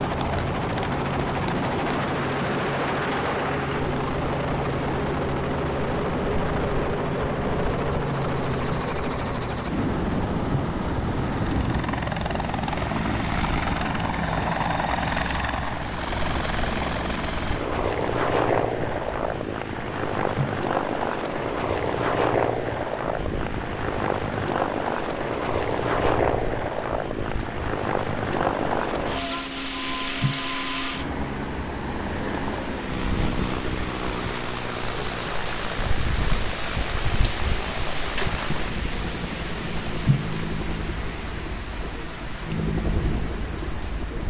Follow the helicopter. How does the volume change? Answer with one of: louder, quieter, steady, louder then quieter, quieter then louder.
quieter.